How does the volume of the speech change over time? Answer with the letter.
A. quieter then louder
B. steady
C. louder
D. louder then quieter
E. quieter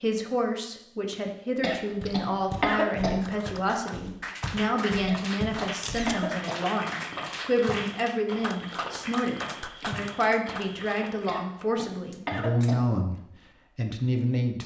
B.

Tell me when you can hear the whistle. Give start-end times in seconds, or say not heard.
not heard.